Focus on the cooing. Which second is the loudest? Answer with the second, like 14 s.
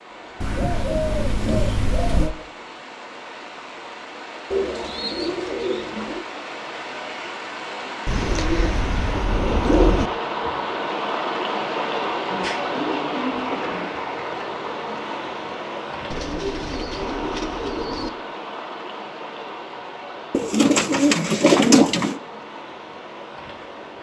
22 s.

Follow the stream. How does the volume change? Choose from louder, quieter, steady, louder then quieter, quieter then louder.
louder then quieter.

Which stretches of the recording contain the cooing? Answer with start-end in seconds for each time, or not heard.
0.4-2.4, 4.5-6.2, 8.1-10.1, 12.3-13.9, 16.1-18.1, 20.3-22.2.